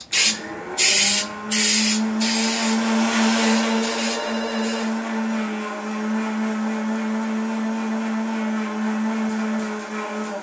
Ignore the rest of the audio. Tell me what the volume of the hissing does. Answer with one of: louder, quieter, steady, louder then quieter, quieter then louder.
quieter.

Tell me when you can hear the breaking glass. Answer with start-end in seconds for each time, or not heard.
not heard.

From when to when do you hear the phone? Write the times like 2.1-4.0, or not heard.
3.4-4.8.